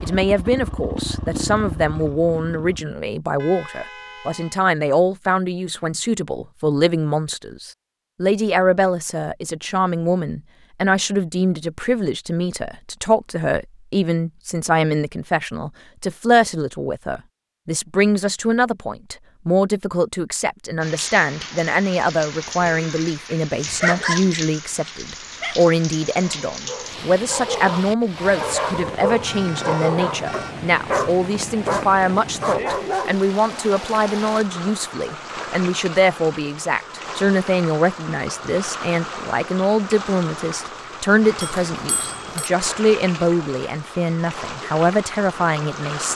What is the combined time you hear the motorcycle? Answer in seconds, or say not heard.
3 s.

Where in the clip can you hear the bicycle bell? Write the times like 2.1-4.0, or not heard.
41.4-42.5.